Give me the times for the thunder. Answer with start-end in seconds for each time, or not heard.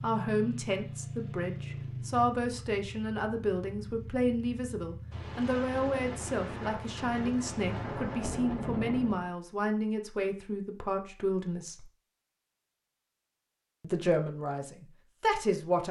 5.1-9.3.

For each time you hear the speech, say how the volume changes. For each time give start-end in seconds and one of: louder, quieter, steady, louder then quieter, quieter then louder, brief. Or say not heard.
0.0-11.8 steady
13.8-15.8 brief.